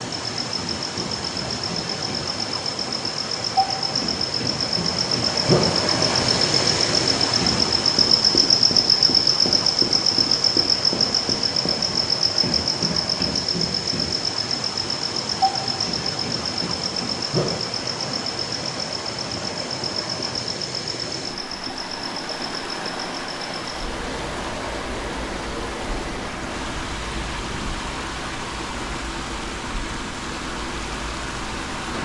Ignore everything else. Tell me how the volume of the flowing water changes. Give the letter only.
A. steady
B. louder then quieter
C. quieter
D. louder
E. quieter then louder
A.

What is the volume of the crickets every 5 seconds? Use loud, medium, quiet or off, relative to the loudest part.
medium, loud, loud, medium, quiet, quiet, quiet.